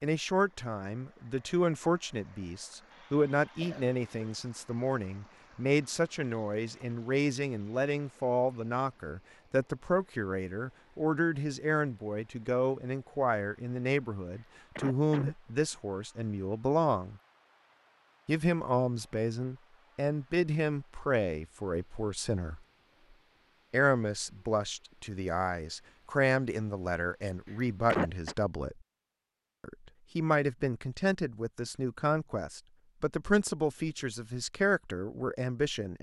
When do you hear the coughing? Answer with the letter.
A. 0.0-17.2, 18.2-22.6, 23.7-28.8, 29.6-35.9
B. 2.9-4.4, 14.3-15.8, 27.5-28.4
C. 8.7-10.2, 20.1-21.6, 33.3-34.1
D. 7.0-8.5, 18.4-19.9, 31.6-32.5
B.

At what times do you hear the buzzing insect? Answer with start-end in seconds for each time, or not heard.
not heard.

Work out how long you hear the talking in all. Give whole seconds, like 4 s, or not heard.
33 s.